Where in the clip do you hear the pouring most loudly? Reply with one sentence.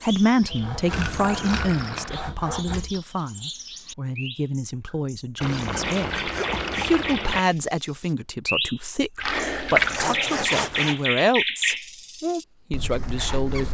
The loudest moment of the pouring is at 10 seconds.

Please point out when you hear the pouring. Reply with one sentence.
You can hear the pouring from 0.9 to 2.2 s, from 5.4 to 7.4 s and from 9.2 to 10.2 s.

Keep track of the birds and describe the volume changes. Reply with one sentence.
The loudness of the birds goes up.